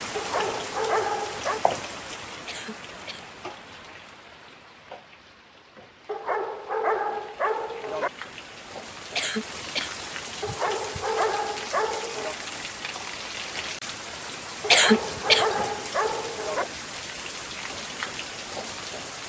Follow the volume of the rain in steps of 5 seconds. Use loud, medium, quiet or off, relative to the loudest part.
loud, medium, loud, loud.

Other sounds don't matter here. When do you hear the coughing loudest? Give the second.
15 s.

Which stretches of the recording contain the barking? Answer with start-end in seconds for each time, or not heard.
0.1-1.6, 6.0-8.1, 10.4-12.3, 14.6-16.6.